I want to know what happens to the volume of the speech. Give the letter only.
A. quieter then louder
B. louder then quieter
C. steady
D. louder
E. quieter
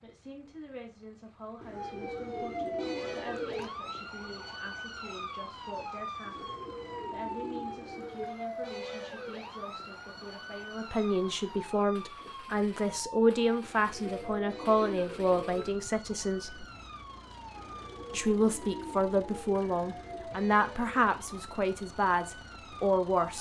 D.